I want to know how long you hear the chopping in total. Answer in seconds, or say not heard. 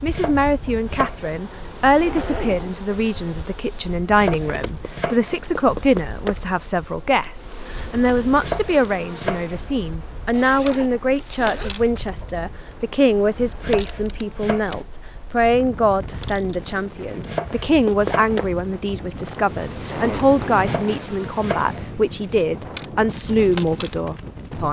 7 s.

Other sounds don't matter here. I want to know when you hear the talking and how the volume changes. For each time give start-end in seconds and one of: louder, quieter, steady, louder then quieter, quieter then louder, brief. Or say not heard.
0.0-24.6 steady.